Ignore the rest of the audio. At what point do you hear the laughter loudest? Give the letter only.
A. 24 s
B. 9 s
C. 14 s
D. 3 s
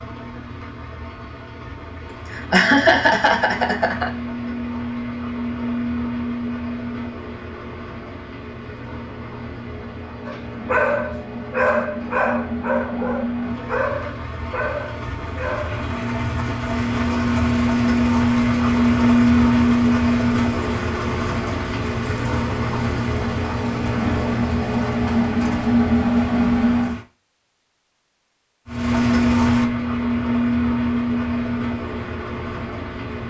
D.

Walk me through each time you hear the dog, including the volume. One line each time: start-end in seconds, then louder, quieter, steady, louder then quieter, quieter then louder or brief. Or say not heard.
10.2-15.8 quieter.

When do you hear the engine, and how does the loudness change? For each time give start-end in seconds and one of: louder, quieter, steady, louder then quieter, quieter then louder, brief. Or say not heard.
0.0-27.1 louder
28.6-33.2 quieter.